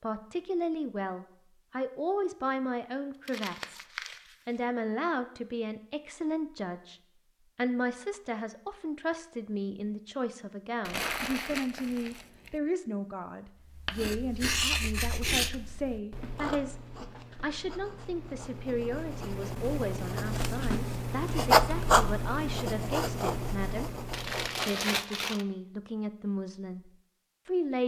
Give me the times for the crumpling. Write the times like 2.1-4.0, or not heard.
3.2-4.6, 10.8-12.6, 24.1-25.4.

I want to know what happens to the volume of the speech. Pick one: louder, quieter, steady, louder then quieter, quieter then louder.
steady.